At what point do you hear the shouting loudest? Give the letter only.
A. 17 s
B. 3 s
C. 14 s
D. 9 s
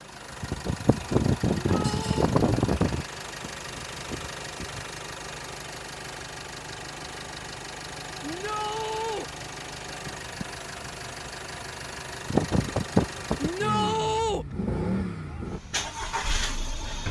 C.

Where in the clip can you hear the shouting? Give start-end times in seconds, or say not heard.
1.7-2.3, 8.2-9.2, 13.3-14.4.